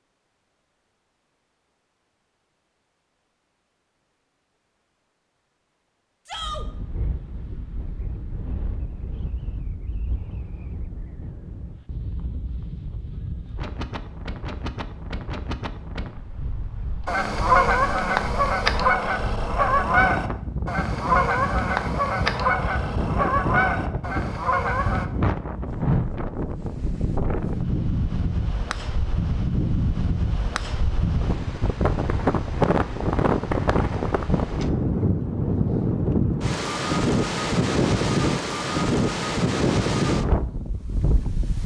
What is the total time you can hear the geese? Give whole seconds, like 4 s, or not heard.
8 s.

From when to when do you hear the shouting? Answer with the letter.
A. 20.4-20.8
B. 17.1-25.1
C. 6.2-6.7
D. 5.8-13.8
C.